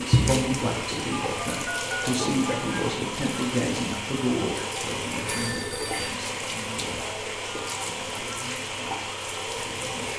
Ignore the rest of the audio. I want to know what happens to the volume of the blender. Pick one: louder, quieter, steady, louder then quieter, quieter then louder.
steady.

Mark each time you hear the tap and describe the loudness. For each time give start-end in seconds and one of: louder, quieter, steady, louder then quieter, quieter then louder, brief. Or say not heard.
0.0-10.1 steady.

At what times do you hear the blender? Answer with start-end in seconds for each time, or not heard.
0.0-10.1.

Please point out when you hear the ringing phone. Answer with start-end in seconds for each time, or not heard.
1.1-2.6, 5.2-6.2.